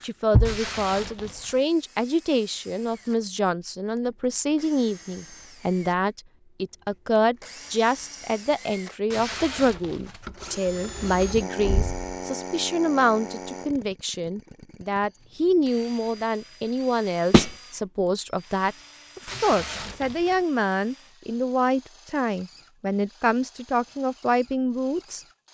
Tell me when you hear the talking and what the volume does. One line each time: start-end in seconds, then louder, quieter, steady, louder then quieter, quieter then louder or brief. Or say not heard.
0.0-25.2 steady.